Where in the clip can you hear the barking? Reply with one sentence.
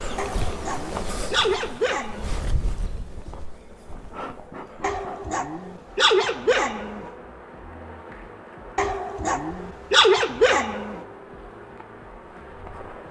You can hear the barking from 0.1 to 2.4 s, from 4.8 to 7.1 s and from 8.8 to 11.0 s.